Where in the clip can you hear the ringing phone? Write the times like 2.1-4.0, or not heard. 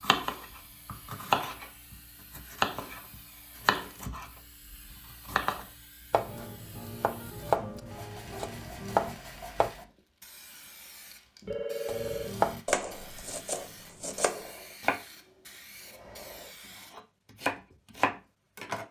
11.4-12.3.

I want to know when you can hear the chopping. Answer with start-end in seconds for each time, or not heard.
0.0-3.0, 3.6-9.7, 11.8-15.0, 16.9-18.8.